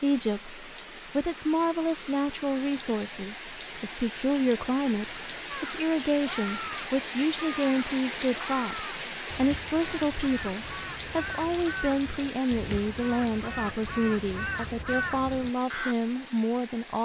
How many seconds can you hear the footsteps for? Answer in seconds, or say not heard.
not heard.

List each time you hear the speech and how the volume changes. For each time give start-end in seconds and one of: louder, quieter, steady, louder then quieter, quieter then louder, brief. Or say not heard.
0.0-17.0 steady.